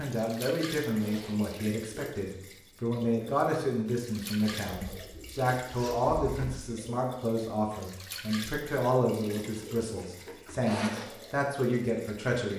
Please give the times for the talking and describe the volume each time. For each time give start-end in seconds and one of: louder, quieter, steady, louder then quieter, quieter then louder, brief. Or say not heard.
0.0-12.5 steady.